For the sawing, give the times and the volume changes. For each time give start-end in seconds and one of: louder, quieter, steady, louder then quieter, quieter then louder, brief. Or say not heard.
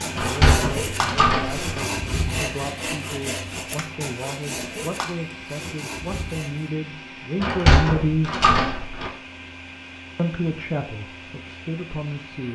0.0-6.7 quieter.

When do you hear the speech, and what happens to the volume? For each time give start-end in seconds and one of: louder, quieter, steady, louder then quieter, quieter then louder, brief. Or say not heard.
0.1-8.4 louder
10.2-12.5 brief.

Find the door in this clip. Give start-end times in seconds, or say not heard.
0.1-1.9, 7.4-9.1.